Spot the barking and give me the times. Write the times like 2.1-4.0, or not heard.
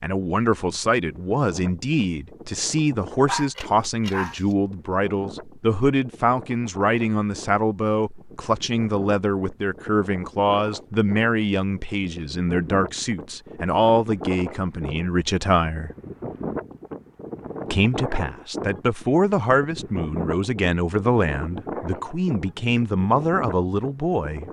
3.2-4.4.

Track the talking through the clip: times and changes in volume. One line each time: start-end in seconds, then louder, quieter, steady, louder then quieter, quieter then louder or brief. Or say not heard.
0.0-15.9 steady
17.7-24.4 steady.